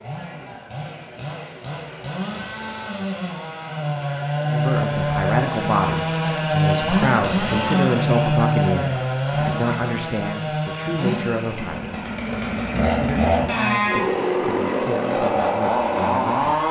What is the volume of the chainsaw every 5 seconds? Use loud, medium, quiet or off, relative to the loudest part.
medium, loud, loud, loud.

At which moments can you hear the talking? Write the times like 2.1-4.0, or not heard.
4.5-12.0, 12.8-16.6.